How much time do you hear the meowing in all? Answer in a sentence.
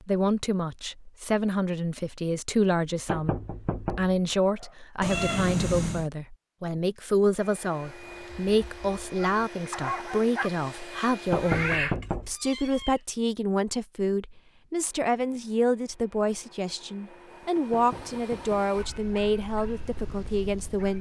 The meowing can be heard for 3 seconds in total.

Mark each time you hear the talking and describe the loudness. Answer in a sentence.
The talking can be heard from 0.1 to 20.9 s, at a steady volume.